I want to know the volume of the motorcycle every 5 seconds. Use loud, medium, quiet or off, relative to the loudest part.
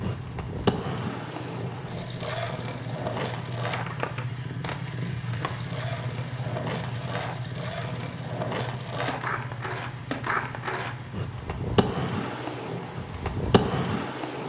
loud, loud, medium.